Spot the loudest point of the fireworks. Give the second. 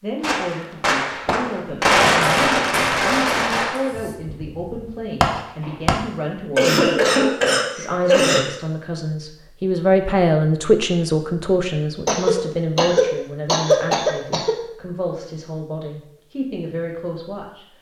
2 s.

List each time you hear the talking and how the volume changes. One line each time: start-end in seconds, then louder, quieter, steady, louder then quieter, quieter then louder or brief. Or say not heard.
0.0-17.7 louder then quieter.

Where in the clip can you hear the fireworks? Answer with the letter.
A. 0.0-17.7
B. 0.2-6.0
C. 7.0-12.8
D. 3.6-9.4
B.